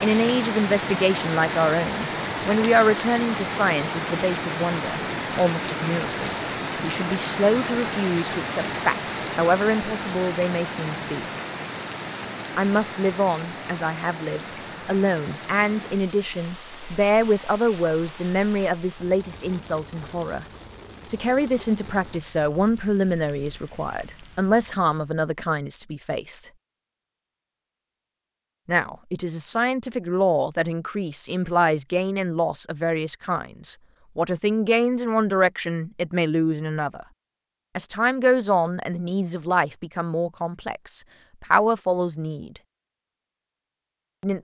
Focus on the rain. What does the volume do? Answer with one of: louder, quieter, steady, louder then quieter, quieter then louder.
quieter.